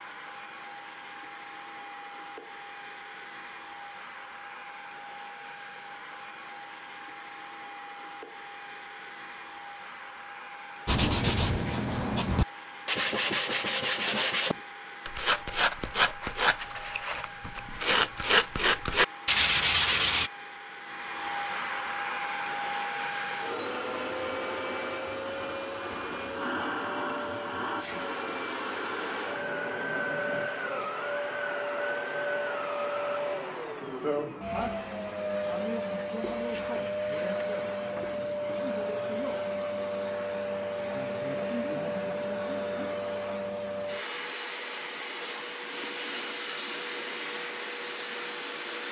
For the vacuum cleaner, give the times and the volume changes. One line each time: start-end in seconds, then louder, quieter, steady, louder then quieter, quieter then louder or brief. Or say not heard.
0.0-48.8 louder.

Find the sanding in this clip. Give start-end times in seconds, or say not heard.
10.8-20.3.